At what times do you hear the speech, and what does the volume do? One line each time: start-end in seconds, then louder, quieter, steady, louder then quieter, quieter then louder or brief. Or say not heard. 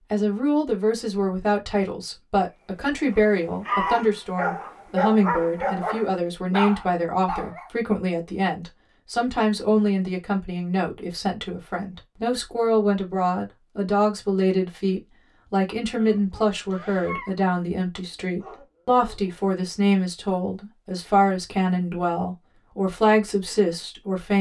0.1-24.3 steady.